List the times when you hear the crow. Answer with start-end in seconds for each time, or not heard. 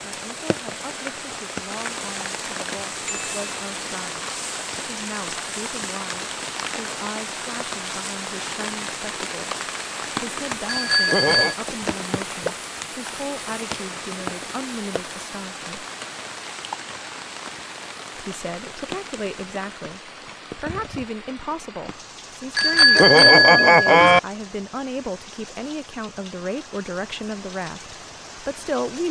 not heard.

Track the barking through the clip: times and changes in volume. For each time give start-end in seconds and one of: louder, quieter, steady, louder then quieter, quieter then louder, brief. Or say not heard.
not heard.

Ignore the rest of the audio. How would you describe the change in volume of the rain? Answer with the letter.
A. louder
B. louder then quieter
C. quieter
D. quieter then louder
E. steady
C.